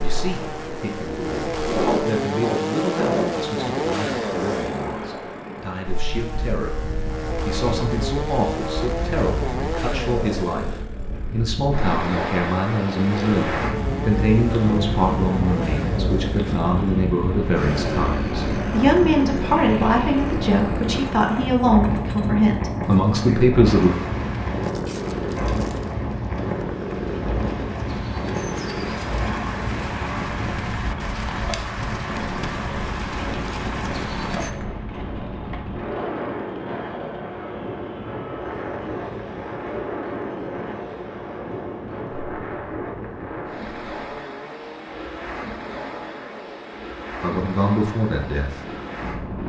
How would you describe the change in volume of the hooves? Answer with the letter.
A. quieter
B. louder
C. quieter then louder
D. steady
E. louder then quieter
B.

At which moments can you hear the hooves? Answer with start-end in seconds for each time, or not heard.
23.6-34.5.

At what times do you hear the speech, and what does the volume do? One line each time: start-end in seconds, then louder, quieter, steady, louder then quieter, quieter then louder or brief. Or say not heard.
0.0-23.9 louder
47.2-49.2 brief.